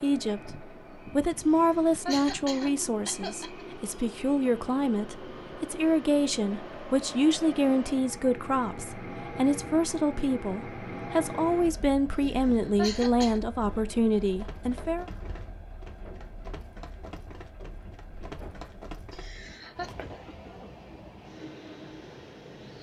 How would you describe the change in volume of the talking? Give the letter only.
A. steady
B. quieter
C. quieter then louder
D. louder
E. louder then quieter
A.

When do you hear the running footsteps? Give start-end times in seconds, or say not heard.
14.2-20.1.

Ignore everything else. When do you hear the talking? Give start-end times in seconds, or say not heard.
0.0-15.1.